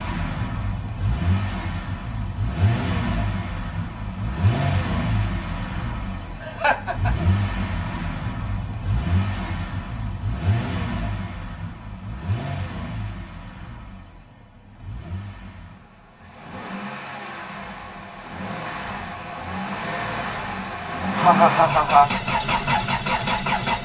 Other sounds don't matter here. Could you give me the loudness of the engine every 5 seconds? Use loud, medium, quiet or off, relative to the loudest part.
loud, medium, medium, medium, loud.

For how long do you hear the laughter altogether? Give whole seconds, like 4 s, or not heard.
2 s.